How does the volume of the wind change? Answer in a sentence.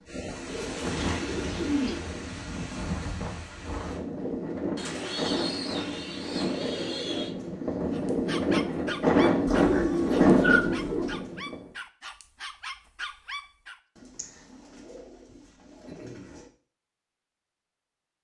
The loudness of the wind goes up.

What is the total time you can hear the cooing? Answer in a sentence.
You can hear the cooing for 8 seconds altogether.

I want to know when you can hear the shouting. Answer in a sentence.
You can't hear the shouting here.